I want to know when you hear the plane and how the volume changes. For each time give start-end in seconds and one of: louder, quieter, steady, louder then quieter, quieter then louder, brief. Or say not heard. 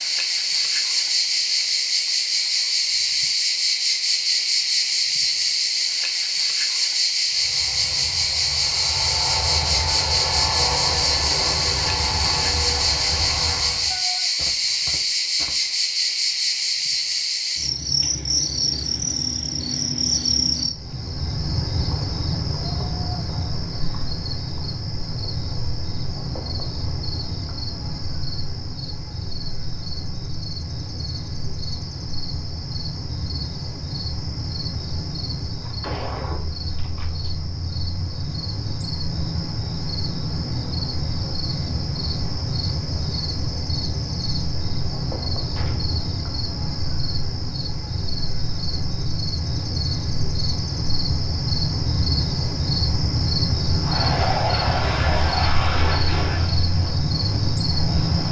7.2-14.0 louder
53.7-58.2 quieter.